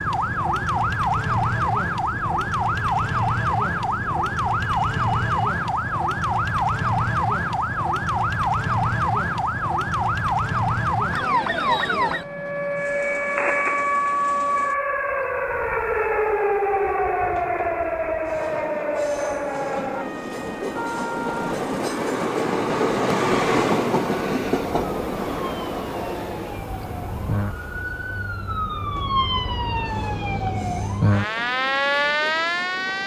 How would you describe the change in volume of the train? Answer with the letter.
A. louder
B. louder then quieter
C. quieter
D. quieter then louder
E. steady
B.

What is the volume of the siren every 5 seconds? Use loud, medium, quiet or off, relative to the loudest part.
loud, loud, loud, loud, medium, medium, loud.